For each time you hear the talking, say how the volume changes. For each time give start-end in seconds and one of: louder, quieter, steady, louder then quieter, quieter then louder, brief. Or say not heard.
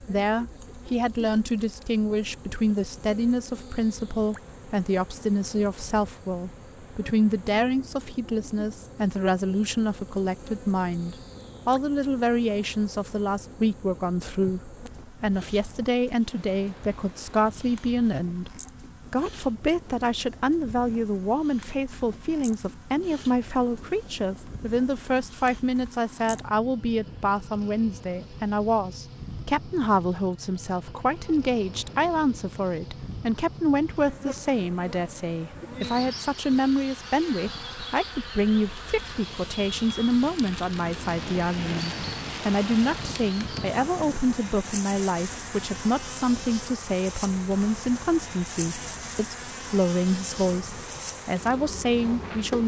0.0-52.6 steady.